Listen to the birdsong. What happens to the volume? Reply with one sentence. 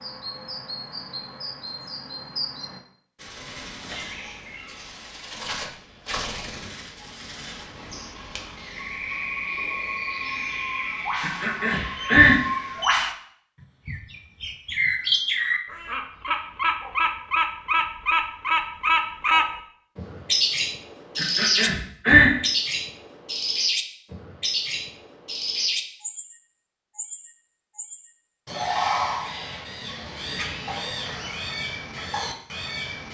The volume of the birdsong goes up, then down.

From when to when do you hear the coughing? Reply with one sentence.
The coughing can be heard from 11.2 to 12.4 s and from 21.1 to 22.3 s.